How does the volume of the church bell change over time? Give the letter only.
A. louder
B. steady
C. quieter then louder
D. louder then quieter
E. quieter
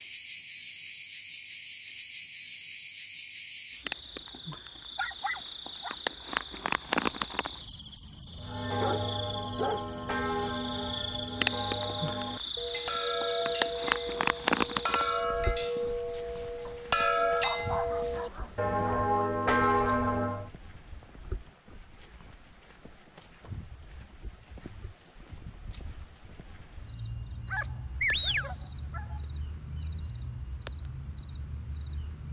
A.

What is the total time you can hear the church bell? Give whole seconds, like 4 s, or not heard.
12 s.